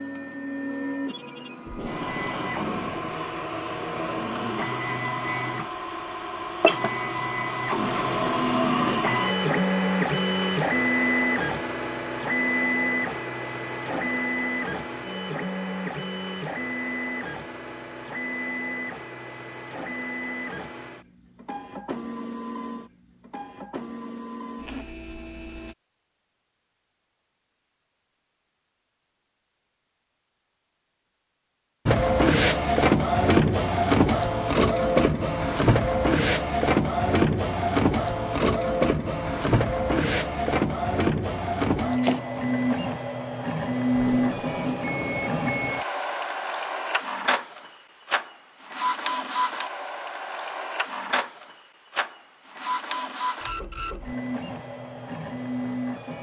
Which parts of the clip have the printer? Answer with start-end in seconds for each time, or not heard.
0.0-25.8, 31.9-56.1.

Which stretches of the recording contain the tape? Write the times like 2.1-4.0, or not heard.
1.6-3.2, 44.0-45.4.